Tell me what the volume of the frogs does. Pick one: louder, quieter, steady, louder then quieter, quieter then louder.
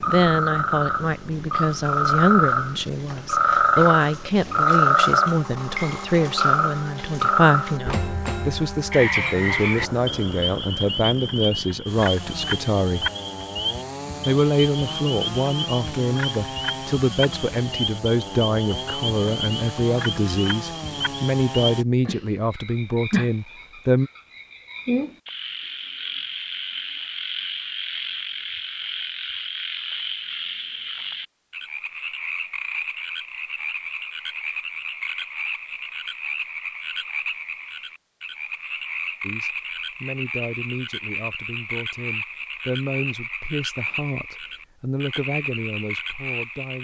quieter.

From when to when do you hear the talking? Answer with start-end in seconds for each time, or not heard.
0.1-13.1, 14.2-24.1, 39.2-46.7.